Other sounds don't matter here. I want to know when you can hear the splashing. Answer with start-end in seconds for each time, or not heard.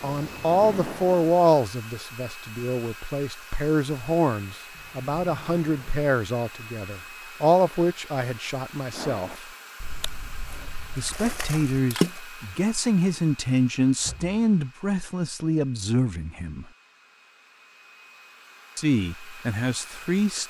0.0-1.4, 8.9-12.2.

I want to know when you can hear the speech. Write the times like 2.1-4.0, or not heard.
0.0-9.4, 10.9-16.6, 18.8-20.4.